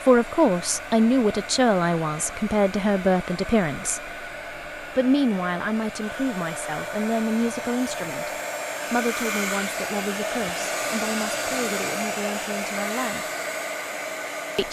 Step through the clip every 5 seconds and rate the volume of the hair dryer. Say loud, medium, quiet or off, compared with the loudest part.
medium, loud, loud.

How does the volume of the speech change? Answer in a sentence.
The volume of the speech goes down.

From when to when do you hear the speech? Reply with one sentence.
The speech can be heard from 0.1 to 4.1 s, from 5.0 to 8.3 s and from 8.9 to 13.2 s.